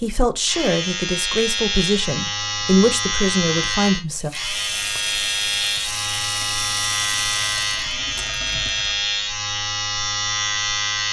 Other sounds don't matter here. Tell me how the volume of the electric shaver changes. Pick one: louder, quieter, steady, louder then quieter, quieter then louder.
steady.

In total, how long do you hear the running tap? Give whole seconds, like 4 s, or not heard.
5 s.